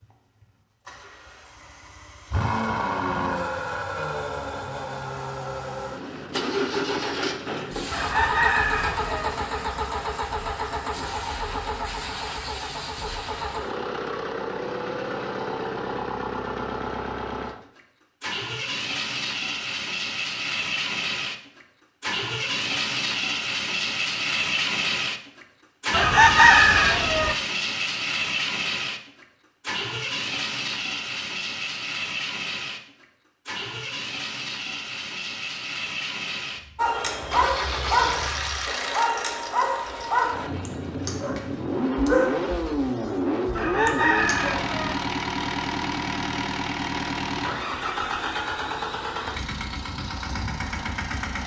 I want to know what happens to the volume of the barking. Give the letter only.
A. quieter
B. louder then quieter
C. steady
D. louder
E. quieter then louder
A.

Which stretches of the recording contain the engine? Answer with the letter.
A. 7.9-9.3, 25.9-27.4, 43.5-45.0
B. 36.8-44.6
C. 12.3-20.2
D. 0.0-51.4
D.